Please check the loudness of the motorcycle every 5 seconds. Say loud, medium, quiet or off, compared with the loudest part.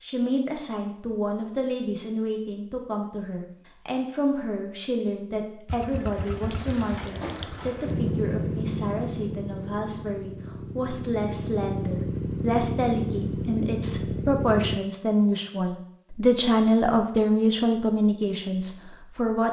off, loud, loud, off.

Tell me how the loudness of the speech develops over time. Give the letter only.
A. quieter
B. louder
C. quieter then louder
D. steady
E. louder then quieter
B.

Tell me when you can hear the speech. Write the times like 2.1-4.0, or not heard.
0.0-19.4.